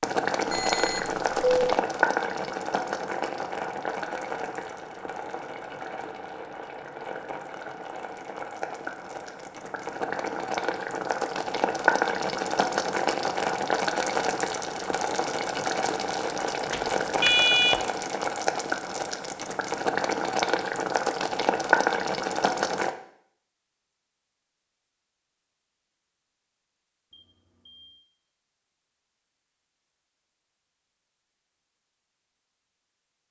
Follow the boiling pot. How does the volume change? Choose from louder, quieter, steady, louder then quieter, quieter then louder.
quieter then louder.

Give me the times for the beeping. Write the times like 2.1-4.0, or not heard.
0.5-1.8, 16.7-17.8, 27.1-28.1.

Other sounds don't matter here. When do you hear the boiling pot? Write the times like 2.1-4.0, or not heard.
0.0-22.9.